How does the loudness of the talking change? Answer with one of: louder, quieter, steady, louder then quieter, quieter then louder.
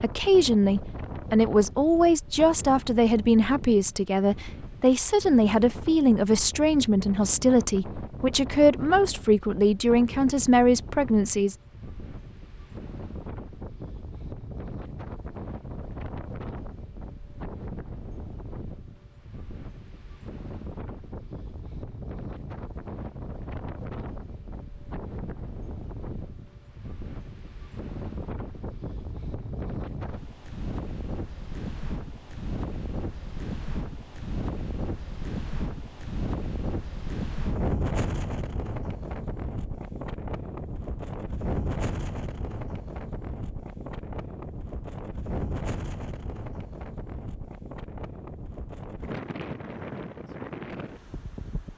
steady.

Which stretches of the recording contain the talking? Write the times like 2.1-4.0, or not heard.
0.0-11.6.